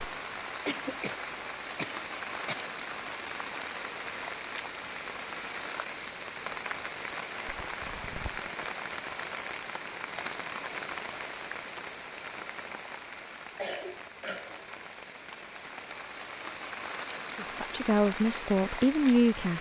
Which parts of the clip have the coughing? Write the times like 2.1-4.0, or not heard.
0.7-2.6, 7.6-8.5, 13.6-14.8.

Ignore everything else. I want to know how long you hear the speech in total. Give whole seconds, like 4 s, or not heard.
2 s.